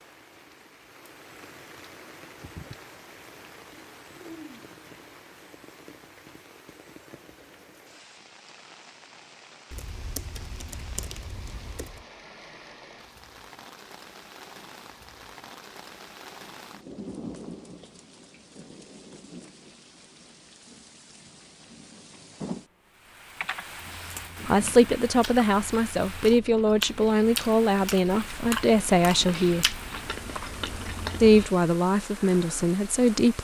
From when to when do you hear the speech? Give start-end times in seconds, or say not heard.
24.4-29.8, 31.2-33.3.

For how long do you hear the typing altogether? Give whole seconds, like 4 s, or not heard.
4 s.